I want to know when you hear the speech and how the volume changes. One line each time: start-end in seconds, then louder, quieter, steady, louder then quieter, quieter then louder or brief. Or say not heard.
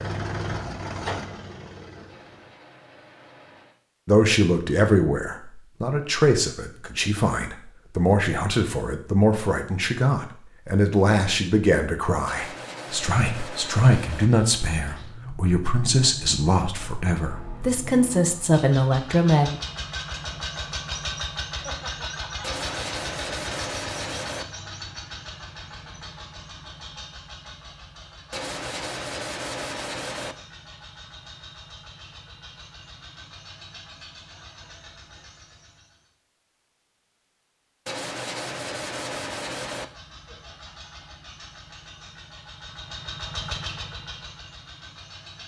4.0-19.6 steady.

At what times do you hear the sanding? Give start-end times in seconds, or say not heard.
2.0-3.8, 12.2-14.3, 22.4-24.4, 28.3-30.4, 37.9-39.9.